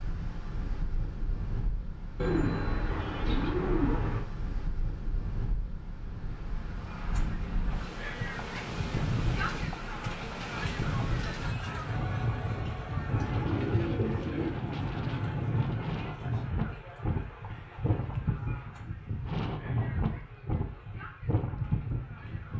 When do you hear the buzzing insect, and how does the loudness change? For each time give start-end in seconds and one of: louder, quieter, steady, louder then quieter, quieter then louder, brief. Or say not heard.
not heard.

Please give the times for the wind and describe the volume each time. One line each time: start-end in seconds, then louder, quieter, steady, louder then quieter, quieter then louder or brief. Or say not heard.
0.0-22.5 louder.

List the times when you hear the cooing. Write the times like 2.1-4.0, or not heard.
2.1-4.2, 13.1-14.6.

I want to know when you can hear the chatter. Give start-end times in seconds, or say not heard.
6.8-22.5.